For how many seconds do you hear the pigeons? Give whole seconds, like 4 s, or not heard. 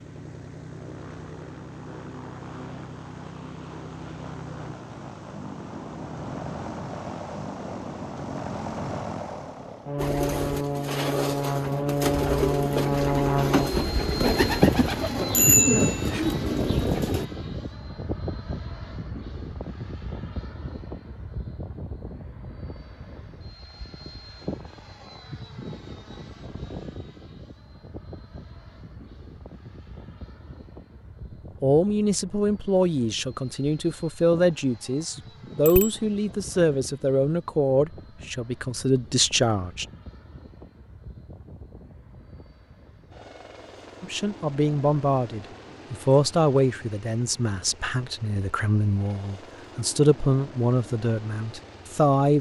7 s.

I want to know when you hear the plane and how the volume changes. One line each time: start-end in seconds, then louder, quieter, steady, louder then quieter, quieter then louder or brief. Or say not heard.
0.0-52.3 louder then quieter.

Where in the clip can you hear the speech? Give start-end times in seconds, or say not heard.
31.6-39.9, 44.0-52.3.